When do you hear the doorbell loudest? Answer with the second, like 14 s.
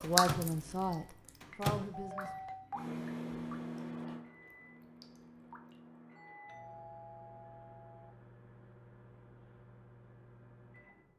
2 s.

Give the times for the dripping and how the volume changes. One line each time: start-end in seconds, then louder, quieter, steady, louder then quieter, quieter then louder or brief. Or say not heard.
0.0-5.8 louder then quieter.